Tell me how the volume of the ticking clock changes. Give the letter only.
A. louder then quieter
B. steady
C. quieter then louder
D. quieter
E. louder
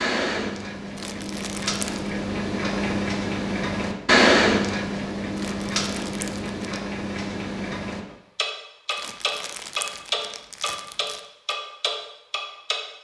A.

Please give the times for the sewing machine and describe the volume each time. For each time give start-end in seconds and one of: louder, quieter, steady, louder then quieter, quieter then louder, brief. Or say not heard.
not heard.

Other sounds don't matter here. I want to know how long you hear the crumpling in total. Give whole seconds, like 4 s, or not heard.
5 s.